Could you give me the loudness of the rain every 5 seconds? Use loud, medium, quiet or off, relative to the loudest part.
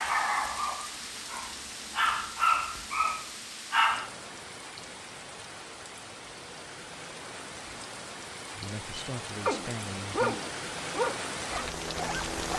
medium, medium, loud.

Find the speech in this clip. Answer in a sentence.
The speech can be heard from 8.5 to 10.4 s.